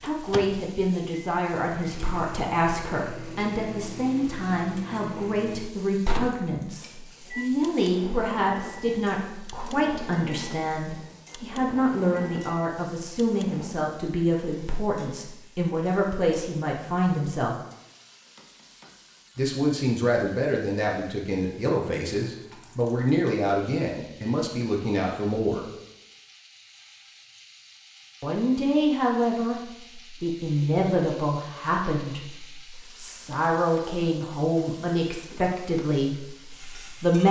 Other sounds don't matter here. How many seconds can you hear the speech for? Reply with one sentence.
The speech can be heard for 33 seconds in total.